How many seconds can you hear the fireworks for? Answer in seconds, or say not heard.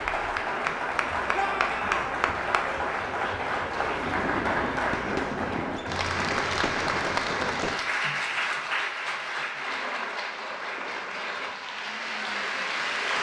4 s.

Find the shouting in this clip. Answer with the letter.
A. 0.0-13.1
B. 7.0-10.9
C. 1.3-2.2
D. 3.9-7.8
C.